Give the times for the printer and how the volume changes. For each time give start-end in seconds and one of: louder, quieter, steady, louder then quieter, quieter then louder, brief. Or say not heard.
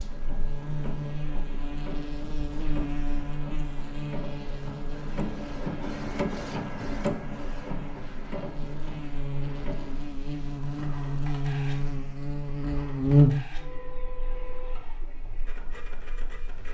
0.0-16.7 louder then quieter.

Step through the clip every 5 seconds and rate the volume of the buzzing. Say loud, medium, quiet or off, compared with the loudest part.
medium, quiet, loud, quiet.